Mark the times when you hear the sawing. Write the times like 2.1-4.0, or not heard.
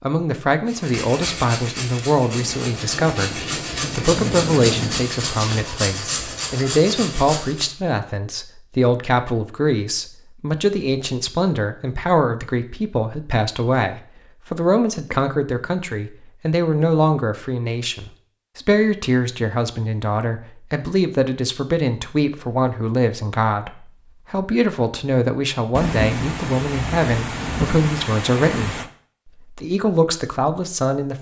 0.7-7.7.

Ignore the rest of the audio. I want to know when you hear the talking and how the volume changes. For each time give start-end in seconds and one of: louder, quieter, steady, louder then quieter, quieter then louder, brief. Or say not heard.
0.0-28.8 steady
29.4-31.1 brief.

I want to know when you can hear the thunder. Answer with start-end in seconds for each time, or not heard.
2.3-5.7, 25.8-28.9.